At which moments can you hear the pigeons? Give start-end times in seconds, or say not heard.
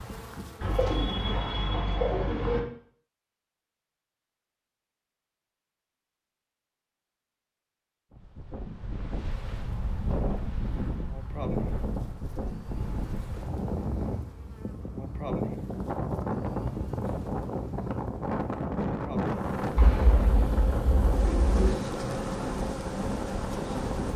0.6-2.6, 19.8-21.8.